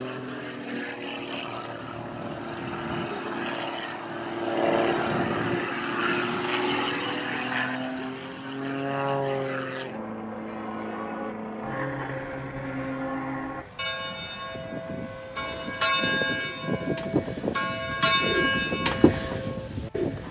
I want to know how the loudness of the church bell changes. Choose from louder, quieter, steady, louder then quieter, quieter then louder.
louder.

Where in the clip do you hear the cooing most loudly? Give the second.
19 s.